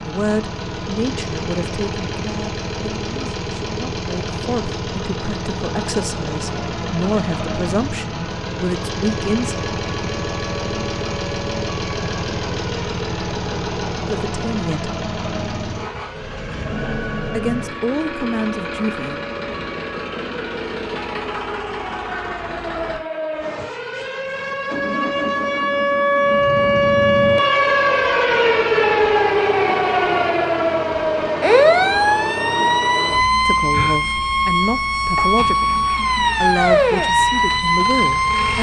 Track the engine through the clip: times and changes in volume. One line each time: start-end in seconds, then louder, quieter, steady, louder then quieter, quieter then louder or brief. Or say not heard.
0.0-38.5 steady.